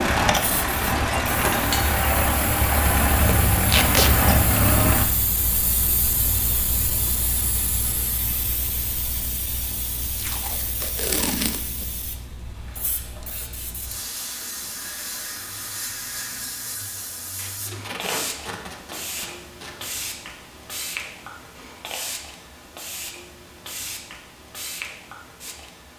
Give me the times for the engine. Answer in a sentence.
You can hear the engine from 0.0 to 5.0 s.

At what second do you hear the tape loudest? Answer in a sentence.
The volume of the tape peaks at 4 seconds.